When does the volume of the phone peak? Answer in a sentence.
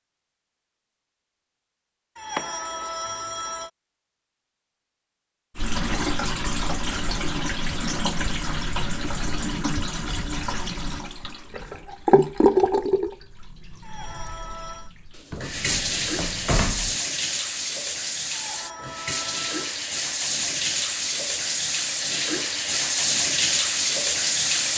The volume of the phone peaks at 3 seconds.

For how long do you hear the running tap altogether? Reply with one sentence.
You can hear the running tap for 19 seconds altogether.